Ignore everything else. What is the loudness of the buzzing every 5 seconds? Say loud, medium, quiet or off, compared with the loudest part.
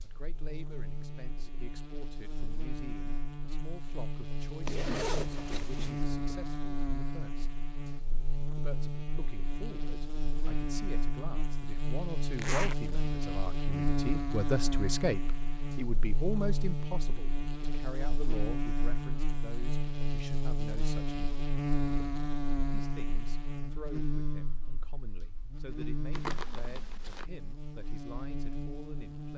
medium, loud, loud, loud, loud, medium.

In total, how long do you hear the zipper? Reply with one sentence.
The zipper can be heard for 3 seconds in total.